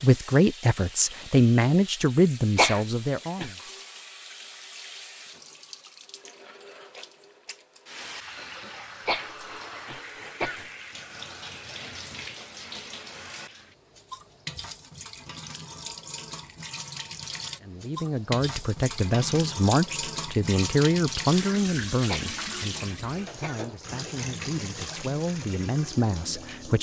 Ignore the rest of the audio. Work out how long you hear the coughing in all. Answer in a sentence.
You can hear the coughing for 4 seconds altogether.